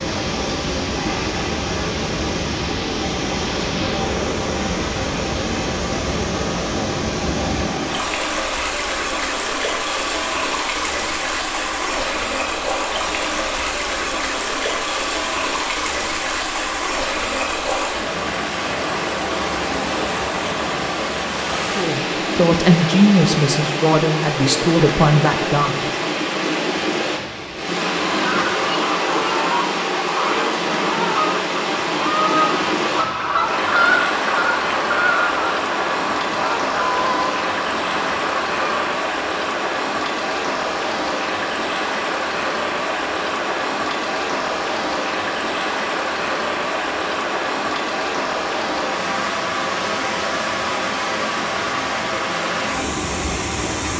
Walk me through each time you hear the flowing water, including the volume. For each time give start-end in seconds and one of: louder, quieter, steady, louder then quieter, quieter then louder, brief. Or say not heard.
0.0-53.9 steady.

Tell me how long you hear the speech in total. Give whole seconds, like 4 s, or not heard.
4 s.